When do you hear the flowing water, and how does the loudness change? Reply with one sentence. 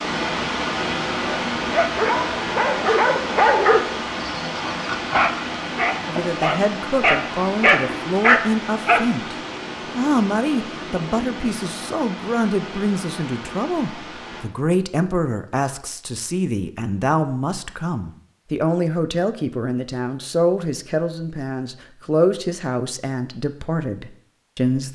You can hear the flowing water from 0.0 to 14.4 s, getting quieter.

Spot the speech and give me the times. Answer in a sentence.
You can hear the speech from 6.0 to 9.3 s and from 9.9 to 24.9 s.